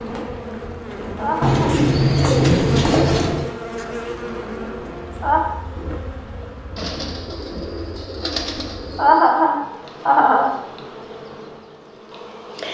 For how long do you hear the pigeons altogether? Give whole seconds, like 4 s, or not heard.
5 s.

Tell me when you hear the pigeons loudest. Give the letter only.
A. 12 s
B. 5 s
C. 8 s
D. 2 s
D.